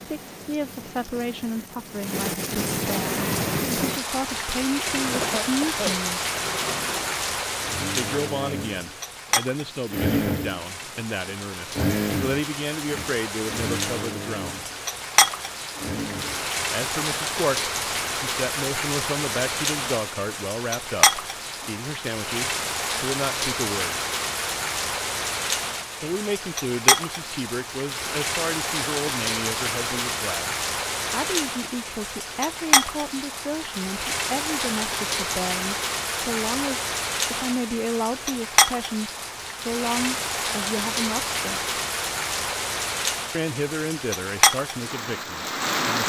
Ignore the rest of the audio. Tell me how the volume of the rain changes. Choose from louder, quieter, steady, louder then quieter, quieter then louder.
steady.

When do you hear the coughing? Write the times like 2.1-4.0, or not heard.
5.1-6.0.